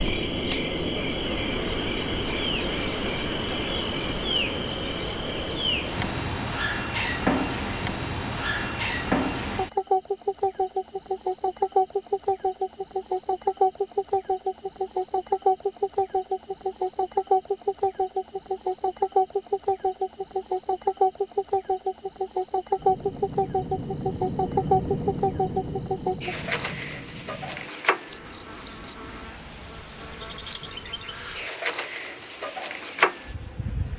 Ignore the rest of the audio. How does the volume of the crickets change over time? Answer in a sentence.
The loudness of the crickets stays about the same.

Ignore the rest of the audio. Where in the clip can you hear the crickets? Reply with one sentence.
The crickets can be heard from 0.0 to 33.9 s.